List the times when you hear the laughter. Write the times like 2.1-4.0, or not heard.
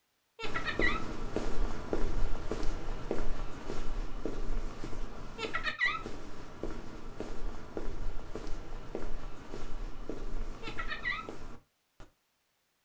0.3-1.0, 5.3-6.0, 10.6-11.2.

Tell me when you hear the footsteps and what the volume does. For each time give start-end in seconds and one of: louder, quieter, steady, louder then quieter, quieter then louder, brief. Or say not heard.
0.4-12.1 quieter.